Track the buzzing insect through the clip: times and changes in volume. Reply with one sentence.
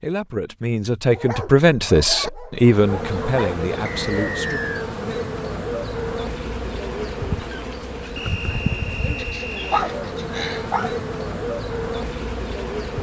The buzzing insect can be heard from 2.6 to 12.9 s, at a steady volume.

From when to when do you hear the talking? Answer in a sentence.
The talking can be heard from 0.0 to 4.8 s.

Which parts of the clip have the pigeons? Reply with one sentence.
You can't hear the pigeons here.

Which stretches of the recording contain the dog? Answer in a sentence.
You can hear the dog from 1.1 to 3.6 s and from 9.2 to 10.9 s.